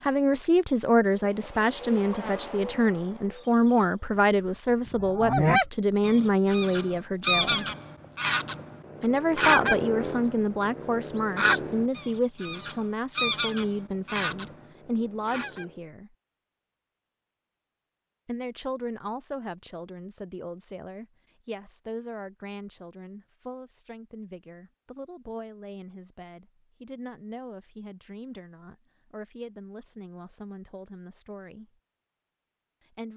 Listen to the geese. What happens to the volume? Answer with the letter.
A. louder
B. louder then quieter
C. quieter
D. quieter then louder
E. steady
C.